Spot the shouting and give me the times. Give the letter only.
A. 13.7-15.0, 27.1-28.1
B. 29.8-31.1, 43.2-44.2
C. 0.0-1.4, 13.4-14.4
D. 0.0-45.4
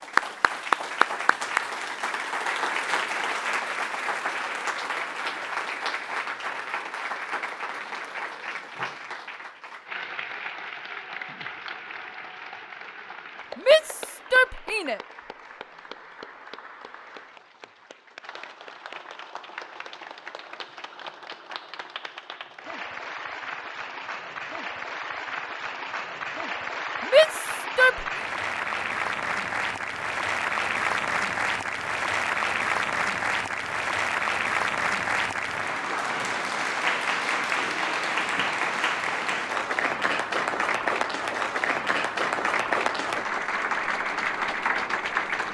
A.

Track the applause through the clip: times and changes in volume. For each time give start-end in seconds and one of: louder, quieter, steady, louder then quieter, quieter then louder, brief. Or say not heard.
0.0-45.4 quieter then louder.